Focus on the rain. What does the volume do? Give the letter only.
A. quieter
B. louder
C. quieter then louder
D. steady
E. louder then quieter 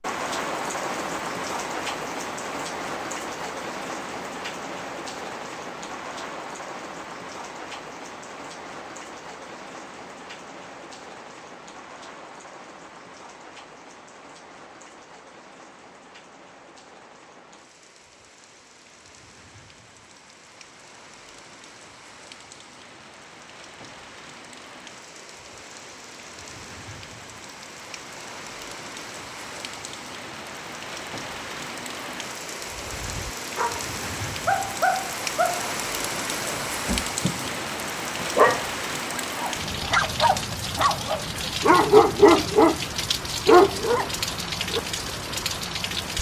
C.